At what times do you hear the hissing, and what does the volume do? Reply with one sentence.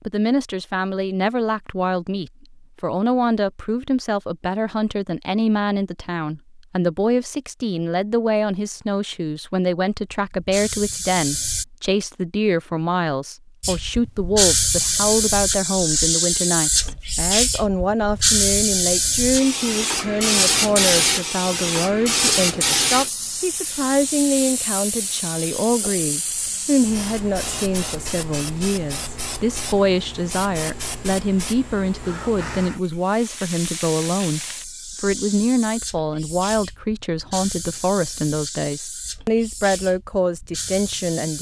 The hissing can be heard briefly from 10.1 to 11.7 s; and from 13.6 to 41.3 s, getting quieter.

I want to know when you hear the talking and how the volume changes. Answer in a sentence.
You can hear the talking from 0.0 to 41.3 s, at a steady volume.